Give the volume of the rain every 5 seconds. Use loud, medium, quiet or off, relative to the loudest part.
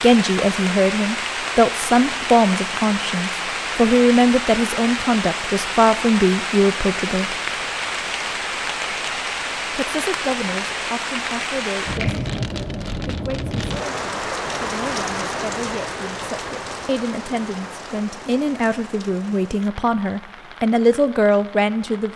loud, loud, loud, medium, quiet.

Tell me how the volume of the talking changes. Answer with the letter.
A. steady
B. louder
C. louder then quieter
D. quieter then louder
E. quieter
D.